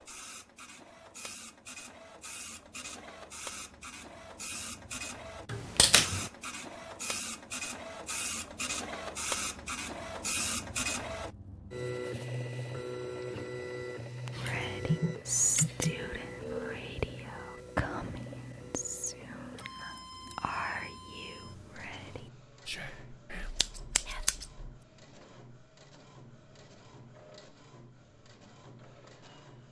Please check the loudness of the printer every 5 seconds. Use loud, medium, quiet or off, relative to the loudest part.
medium, loud, loud, medium, quiet, quiet.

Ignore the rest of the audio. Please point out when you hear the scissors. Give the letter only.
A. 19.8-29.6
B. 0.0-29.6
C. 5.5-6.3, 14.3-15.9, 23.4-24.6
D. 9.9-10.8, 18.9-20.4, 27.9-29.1
C.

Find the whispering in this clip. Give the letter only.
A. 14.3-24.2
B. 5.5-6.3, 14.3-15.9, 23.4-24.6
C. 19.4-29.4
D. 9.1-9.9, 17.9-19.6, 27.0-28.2
A.